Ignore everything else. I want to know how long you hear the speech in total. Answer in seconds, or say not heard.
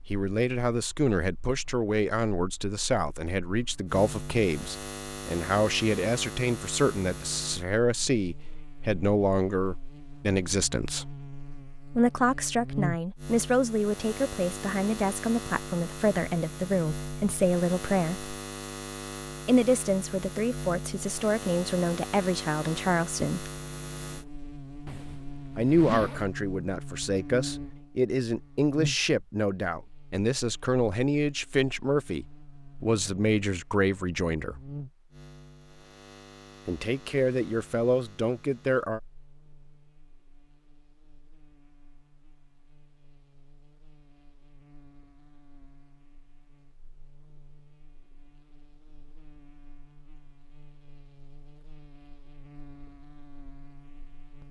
33 s.